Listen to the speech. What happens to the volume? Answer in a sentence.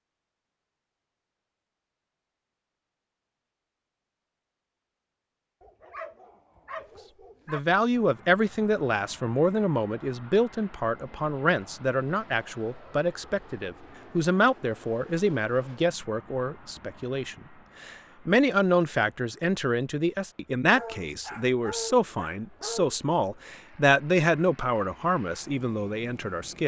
The loudness of the speech stays about the same.